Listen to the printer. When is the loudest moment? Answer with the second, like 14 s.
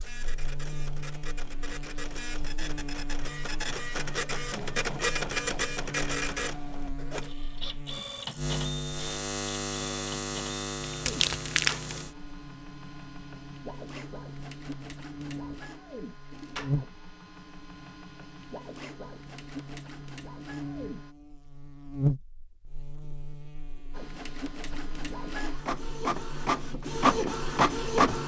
28 s.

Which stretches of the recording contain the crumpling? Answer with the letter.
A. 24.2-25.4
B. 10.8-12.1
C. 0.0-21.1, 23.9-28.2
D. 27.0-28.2
B.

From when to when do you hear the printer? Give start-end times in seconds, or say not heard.
0.0-21.1, 23.9-28.2.